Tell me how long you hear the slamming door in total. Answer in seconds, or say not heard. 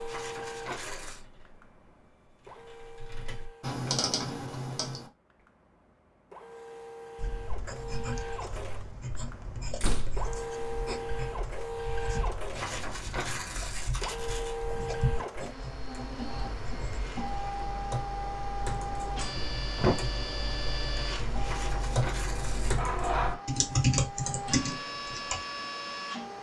2 s.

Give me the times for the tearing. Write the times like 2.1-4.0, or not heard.
0.1-1.2, 12.6-14.6, 21.4-22.8.